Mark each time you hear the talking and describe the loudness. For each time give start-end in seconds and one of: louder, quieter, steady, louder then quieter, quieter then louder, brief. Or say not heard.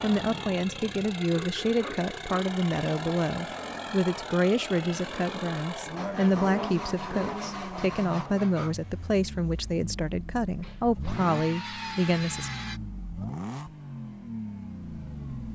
0.0-12.5 steady.